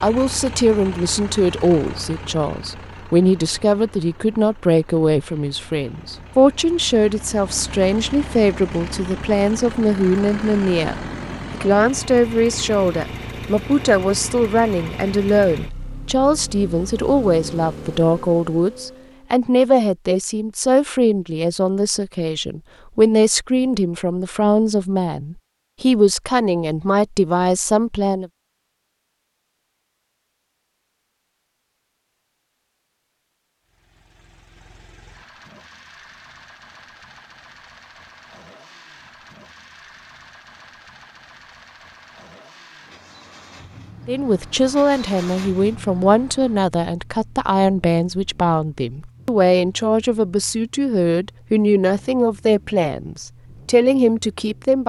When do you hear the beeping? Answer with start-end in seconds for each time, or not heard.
not heard.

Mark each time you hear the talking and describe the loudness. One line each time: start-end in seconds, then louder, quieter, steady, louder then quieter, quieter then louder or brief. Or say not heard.
0.0-28.3 steady
44.0-54.8 steady.